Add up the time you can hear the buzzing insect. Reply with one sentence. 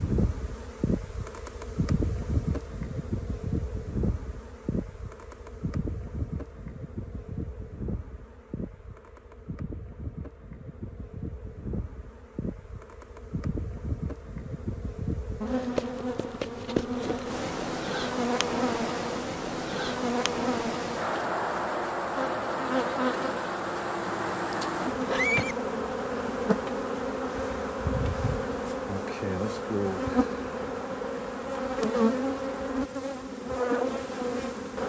The buzzing insect can be heard for 35 seconds in total.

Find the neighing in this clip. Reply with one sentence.
You can hear the neighing from 24.5 to 25.6 s.